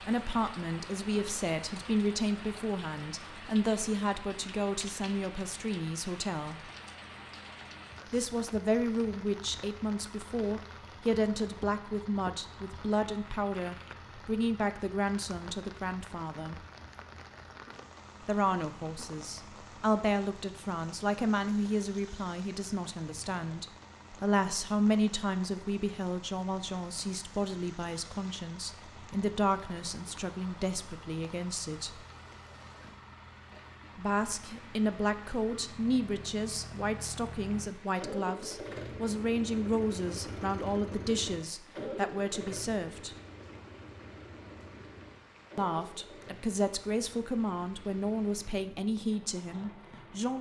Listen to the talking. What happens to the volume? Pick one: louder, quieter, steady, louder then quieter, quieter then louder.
steady.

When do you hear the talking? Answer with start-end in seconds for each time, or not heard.
0.1-6.7, 8.1-16.6, 18.2-31.9, 34.0-43.1, 45.5-50.3.